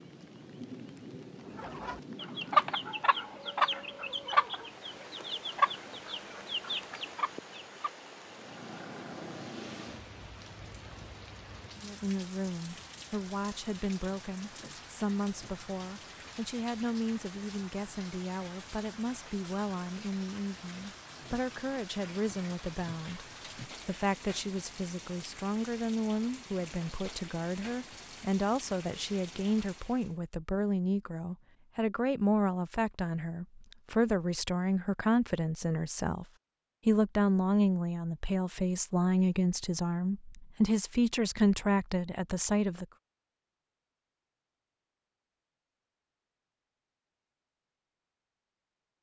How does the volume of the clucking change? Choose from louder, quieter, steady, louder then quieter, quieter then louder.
quieter.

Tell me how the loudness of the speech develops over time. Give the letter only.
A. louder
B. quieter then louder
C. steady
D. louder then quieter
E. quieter
A.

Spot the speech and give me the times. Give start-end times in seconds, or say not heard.
11.8-36.2, 36.9-42.9.